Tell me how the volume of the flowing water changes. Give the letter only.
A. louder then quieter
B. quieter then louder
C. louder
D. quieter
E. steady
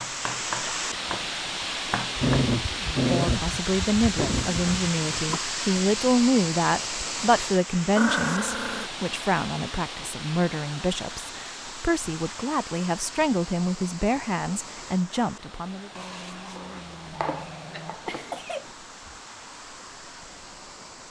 D.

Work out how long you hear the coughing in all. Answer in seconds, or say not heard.
2 s.